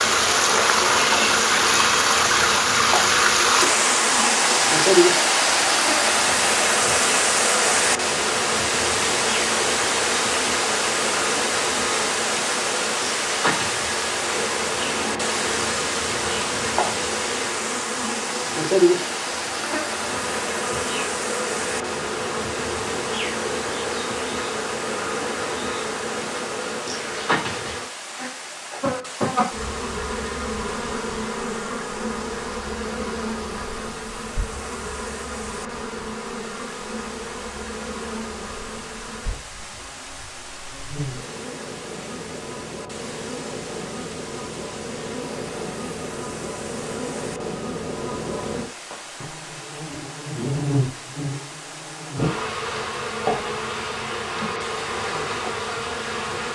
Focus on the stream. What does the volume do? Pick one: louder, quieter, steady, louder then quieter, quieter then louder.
quieter.